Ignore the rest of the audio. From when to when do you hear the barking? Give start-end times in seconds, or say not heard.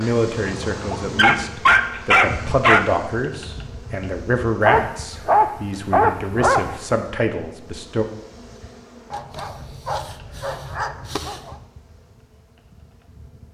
0.5-2.9, 4.6-6.8, 9.1-11.6.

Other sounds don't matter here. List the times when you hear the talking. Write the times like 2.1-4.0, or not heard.
0.0-8.1.